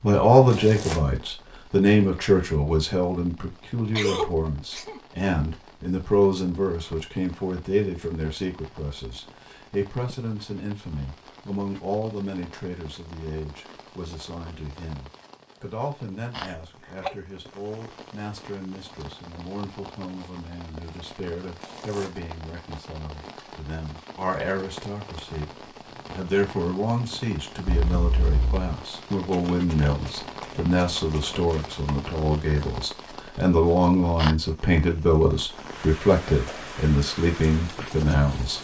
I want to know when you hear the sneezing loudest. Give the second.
4 s.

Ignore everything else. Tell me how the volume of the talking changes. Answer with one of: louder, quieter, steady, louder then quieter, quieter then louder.
quieter then louder.